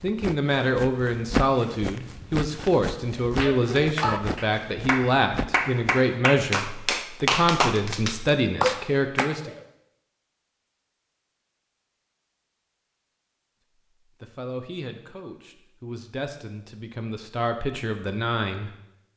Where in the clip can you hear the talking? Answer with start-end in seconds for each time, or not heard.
0.0-9.5, 14.0-18.7.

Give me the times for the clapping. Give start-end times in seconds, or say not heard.
3.2-9.6.